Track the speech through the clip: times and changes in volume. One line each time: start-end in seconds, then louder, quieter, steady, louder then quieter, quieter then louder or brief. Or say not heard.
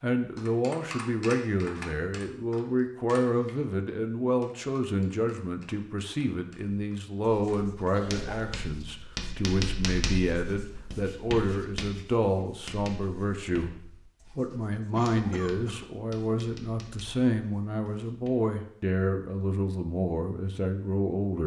0.0-13.8 steady
14.3-21.4 steady.